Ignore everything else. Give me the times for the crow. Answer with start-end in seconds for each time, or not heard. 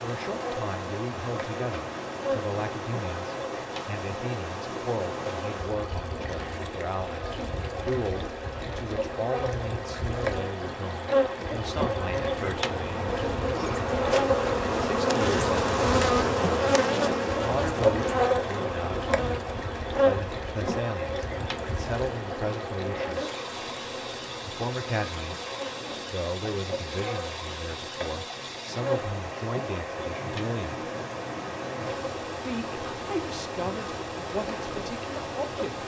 not heard.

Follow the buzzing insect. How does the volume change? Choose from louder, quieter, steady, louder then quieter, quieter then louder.
louder then quieter.